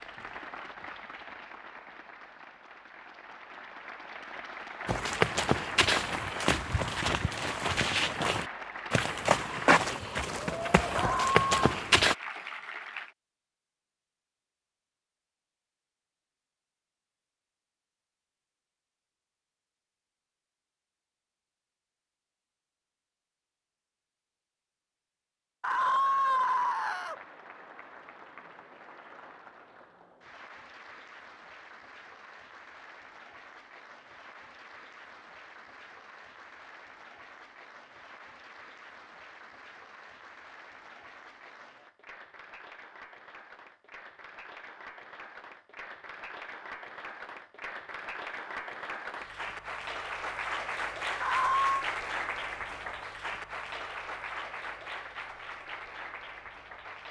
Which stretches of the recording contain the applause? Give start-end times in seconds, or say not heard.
0.0-13.2, 25.7-57.0.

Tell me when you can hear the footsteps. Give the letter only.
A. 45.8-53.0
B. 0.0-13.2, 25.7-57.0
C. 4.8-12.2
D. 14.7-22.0
C.